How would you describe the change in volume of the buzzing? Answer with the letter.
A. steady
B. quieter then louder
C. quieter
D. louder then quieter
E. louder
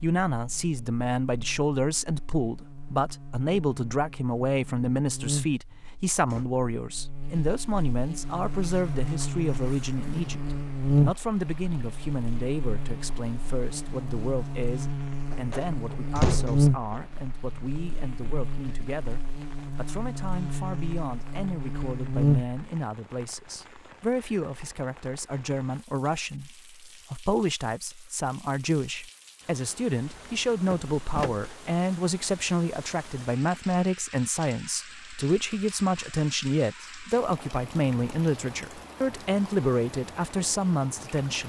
D.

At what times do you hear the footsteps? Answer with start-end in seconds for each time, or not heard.
not heard.